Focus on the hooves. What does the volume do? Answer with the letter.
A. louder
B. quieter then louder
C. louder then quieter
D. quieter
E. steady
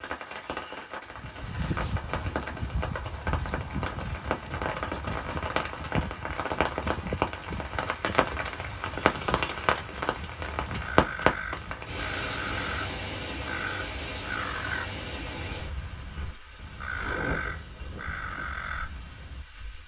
D.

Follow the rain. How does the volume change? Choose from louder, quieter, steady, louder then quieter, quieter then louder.
louder then quieter.